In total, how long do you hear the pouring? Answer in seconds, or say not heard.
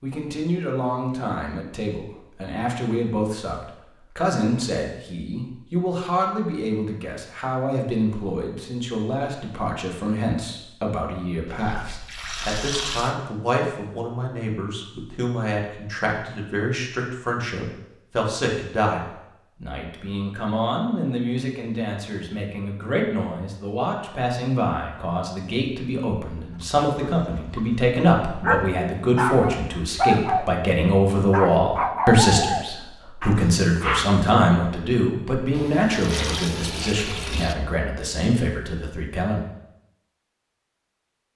4 s.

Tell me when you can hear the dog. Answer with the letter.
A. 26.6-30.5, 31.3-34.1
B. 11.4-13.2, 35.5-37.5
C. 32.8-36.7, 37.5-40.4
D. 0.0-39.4
A.